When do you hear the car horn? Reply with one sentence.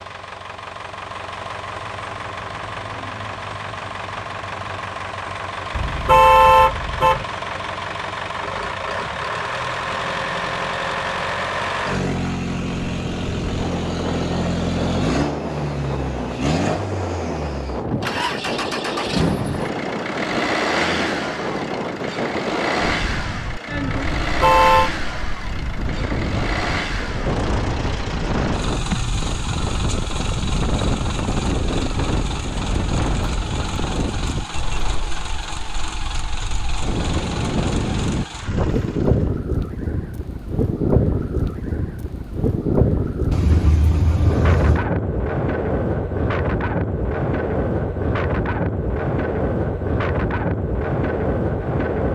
The car horn can be heard from 5.7 to 7.2 s, from 24.1 to 24.9 s and from 43.3 to 44.9 s.